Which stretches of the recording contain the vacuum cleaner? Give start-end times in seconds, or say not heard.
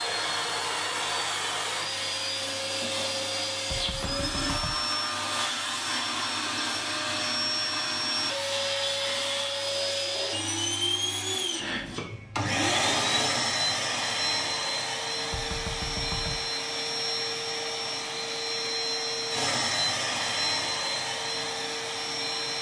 0.0-22.5.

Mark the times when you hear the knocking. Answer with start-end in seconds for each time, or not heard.
3.7-4.8, 15.3-16.5.